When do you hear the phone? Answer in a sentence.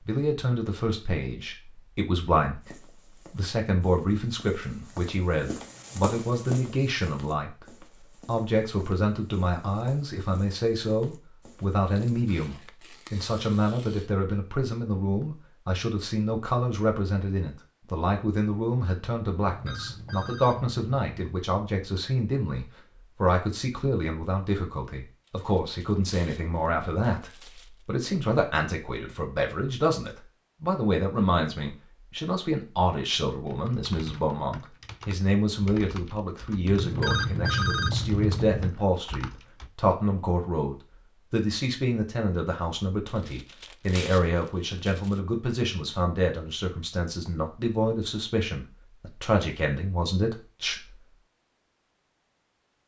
You can hear the phone from 19.4 to 21.4 s and from 36.6 to 38.7 s.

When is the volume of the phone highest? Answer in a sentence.
The volume of the phone peaks at 38 seconds.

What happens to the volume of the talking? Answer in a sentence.
The volume of the talking stays about the same.